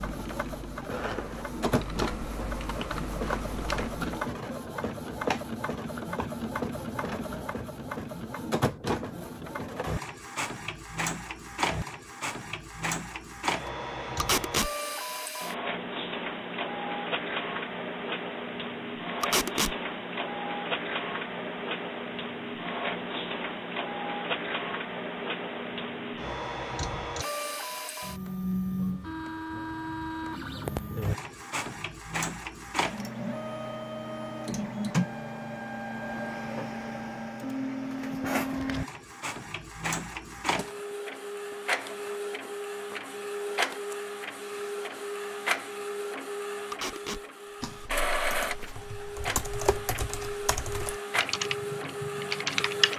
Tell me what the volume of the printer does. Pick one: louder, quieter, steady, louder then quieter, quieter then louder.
steady.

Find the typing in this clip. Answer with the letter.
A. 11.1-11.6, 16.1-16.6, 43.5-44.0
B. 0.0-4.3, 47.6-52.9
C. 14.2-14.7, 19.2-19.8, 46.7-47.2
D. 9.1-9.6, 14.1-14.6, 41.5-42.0
B.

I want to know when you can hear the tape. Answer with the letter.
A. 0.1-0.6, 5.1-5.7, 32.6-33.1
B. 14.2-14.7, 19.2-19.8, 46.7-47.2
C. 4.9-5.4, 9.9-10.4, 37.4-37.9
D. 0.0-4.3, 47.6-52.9
B.